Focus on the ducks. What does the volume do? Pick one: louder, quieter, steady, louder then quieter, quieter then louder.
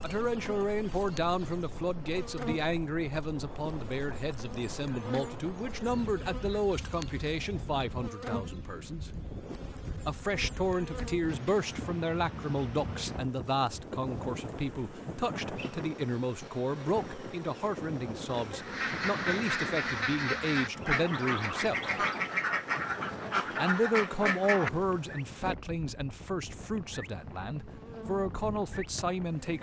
steady.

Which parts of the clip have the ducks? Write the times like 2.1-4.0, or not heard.
18.6-24.7.